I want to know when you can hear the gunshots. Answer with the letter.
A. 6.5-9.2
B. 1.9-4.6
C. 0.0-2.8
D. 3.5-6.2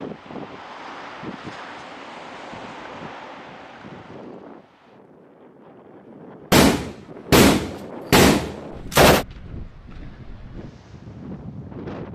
A.